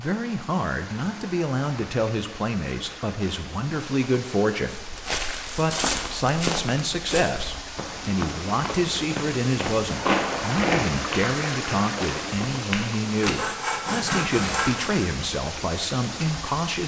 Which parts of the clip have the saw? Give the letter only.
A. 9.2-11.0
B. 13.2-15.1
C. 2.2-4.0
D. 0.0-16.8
B.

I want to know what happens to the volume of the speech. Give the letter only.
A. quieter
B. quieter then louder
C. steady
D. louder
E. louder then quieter
C.